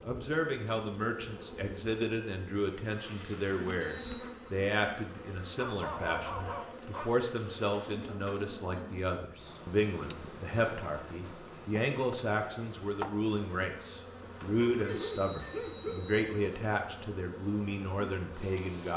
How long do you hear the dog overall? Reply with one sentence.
You can hear the dog for 3 seconds altogether.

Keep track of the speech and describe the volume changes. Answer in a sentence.
The volume of the speech stays about the same.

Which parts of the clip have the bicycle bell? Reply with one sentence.
You can hear the bicycle bell from 3.1 to 4.2 s, from 8.1 to 8.8 s and from 14.2 to 16.2 s.